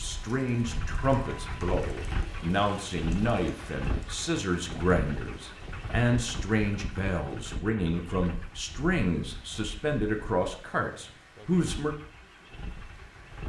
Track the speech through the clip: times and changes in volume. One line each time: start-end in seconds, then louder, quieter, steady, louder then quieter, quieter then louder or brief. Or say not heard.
0.0-11.9 steady.